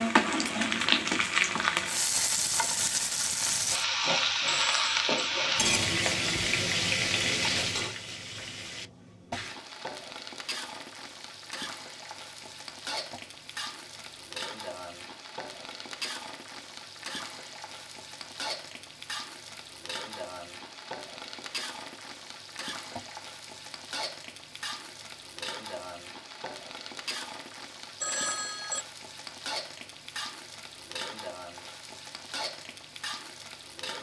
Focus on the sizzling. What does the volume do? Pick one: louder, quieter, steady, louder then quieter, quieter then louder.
quieter.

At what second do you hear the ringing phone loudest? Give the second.
28 s.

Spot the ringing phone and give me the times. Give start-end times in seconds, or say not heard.
4.5-5.0, 28.0-28.9.